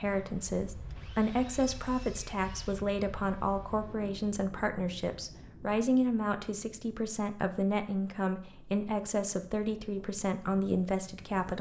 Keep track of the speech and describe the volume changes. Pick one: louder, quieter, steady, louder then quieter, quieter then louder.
steady.